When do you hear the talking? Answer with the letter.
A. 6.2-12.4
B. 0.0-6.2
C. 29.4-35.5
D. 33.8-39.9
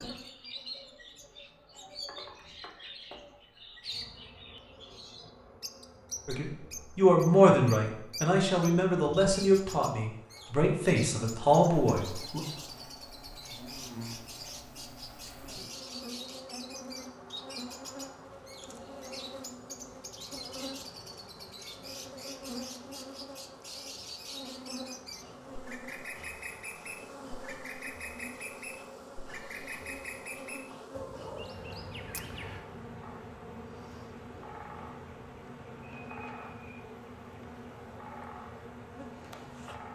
A.